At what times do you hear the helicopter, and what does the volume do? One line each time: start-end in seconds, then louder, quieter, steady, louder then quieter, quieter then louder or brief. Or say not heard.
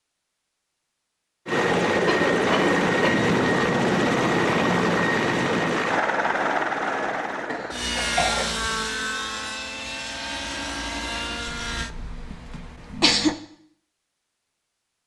1.4-11.9 quieter.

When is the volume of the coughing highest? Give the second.
13 s.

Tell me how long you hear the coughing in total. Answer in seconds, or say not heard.
4 s.